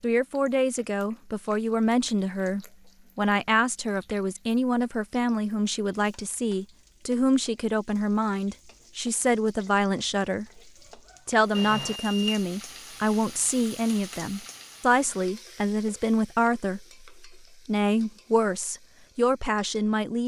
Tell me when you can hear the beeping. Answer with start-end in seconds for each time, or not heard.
11.6-12.4.